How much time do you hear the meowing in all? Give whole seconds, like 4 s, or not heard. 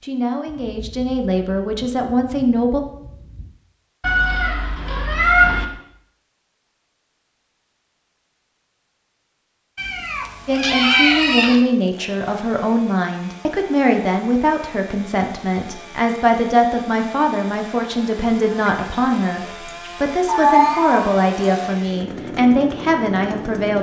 5 s.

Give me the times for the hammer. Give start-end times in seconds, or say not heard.
not heard.